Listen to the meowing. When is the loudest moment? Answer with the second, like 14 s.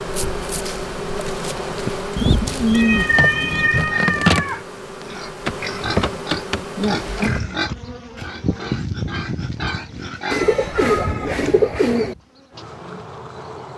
3 s.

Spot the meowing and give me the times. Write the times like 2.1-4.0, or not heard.
2.7-4.6, 10.6-11.6.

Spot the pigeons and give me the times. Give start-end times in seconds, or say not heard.
2.1-3.7, 10.3-12.2.